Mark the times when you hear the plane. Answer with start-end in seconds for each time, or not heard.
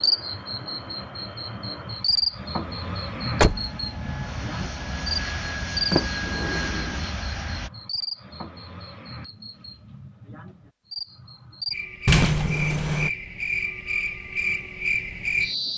0.0-7.7.